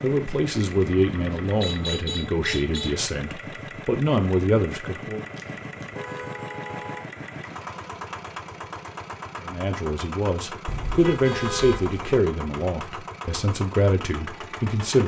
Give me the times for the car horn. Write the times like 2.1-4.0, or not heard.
1.3-3.0, 5.3-7.0, 10.7-12.2.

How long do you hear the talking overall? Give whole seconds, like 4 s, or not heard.
11 s.